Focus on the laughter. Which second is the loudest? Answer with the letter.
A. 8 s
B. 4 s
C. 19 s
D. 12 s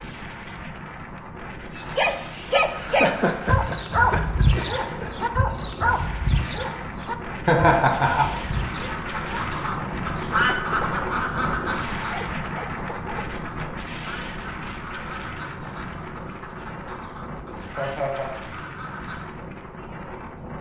A.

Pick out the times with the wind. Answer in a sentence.
You can hear the wind from 0.0 to 20.5 s.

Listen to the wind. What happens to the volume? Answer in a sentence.
The loudness of the wind goes up, then down.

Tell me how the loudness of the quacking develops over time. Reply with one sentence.
The loudness of the quacking goes down.